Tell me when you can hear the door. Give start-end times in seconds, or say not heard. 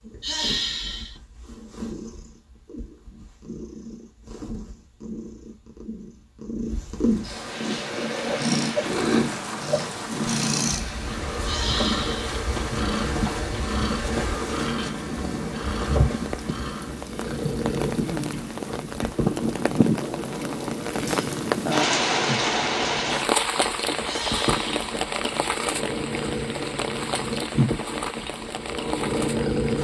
not heard.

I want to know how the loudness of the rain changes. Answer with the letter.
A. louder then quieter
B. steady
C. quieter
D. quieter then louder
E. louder
A.